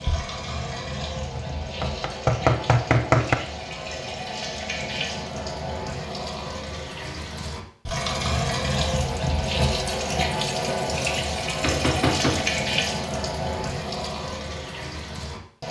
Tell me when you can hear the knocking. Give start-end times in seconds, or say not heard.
1.4-3.4, 11.6-12.5.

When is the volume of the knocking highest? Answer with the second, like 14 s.
3 s.